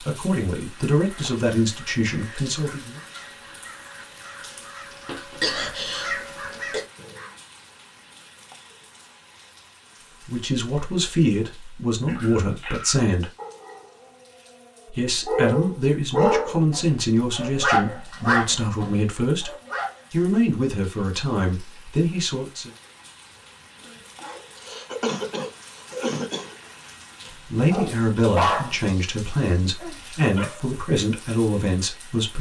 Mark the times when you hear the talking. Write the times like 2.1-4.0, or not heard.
0.1-3.0, 10.2-13.3, 14.9-19.5, 20.1-22.7, 27.5-32.3.